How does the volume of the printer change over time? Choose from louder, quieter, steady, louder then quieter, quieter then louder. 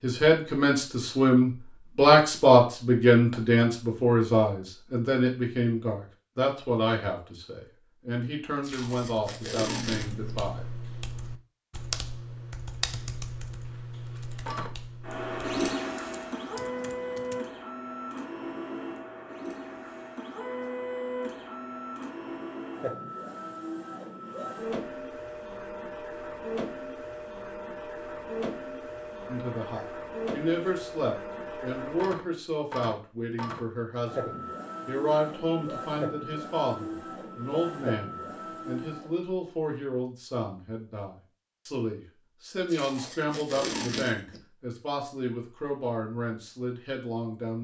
steady.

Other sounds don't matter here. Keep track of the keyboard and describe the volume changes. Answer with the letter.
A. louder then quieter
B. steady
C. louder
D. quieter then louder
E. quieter
E.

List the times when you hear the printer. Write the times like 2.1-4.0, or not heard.
14.4-39.2.